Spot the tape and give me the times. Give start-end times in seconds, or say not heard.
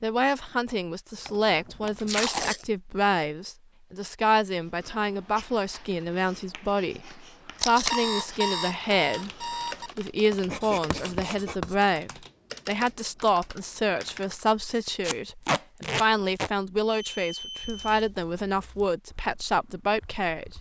2.0-2.6, 7.5-8.0, 15.0-16.5.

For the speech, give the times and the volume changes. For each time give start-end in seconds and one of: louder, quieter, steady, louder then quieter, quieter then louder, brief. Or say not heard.
0.0-20.5 steady.